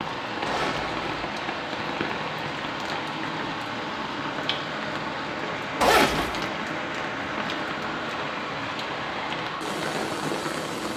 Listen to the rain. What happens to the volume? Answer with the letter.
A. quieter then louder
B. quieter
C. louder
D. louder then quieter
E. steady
E.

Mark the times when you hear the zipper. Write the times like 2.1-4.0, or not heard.
0.5-1.2, 5.8-6.5.